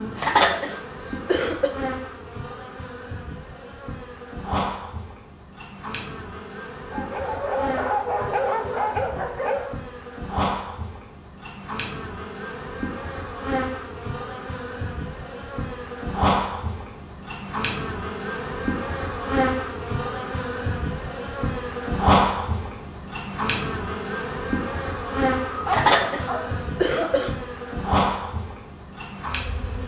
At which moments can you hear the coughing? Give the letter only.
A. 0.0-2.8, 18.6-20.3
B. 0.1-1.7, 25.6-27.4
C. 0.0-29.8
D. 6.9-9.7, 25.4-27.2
B.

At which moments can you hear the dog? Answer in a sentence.
You can hear the dog from 6.9 to 9.7 s and from 25.4 to 27.2 s.